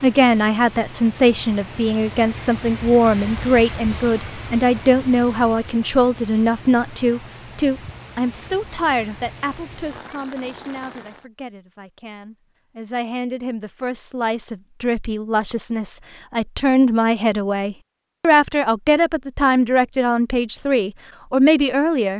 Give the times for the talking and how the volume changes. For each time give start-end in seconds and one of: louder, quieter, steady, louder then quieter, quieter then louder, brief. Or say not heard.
0.0-22.1 quieter then louder.